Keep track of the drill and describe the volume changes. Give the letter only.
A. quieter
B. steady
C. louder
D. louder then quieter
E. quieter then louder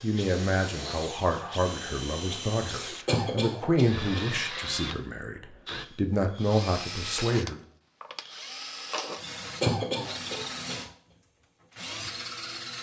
B.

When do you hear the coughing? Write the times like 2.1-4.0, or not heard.
3.0-4.6, 9.6-10.8.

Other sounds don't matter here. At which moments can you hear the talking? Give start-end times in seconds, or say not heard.
0.0-7.6.